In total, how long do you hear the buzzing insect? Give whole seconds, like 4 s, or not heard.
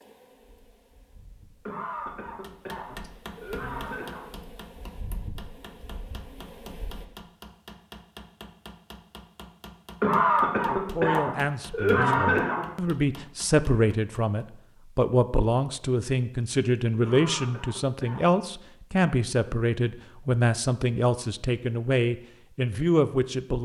7 s.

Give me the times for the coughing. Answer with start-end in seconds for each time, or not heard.
1.6-4.2, 10.0-12.7, 17.0-18.4.